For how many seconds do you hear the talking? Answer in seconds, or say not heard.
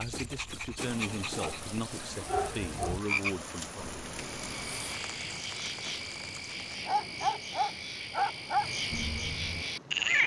4 s.